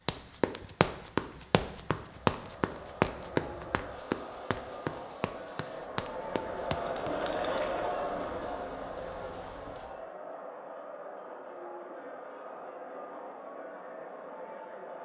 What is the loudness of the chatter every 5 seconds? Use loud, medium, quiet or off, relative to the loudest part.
medium, loud, medium.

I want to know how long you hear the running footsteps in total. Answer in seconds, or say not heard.
7 s.